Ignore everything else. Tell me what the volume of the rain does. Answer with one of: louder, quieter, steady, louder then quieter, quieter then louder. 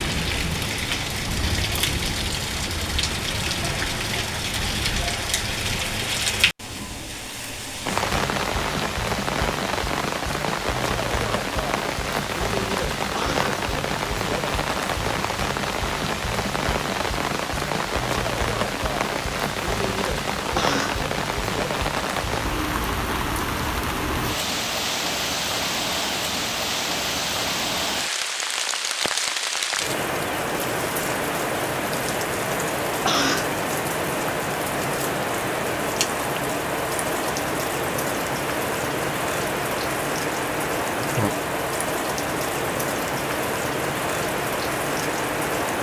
steady.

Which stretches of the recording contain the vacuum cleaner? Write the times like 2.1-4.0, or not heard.
not heard.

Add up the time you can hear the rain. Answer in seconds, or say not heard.
46 s.